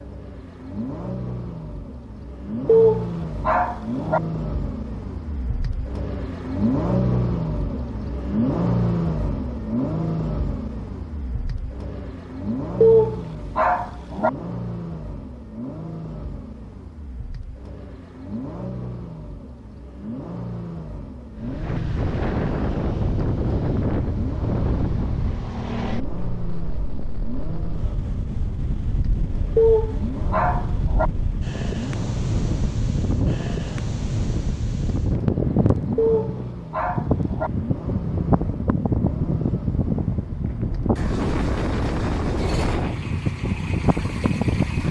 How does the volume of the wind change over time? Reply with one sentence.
The loudness of the wind goes down, then up.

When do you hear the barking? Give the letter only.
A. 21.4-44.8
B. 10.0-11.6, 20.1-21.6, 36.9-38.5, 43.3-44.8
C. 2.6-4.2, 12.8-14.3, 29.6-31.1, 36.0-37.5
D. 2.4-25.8
C.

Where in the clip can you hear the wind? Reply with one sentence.
The wind can be heard from 21.4 to 44.8 s.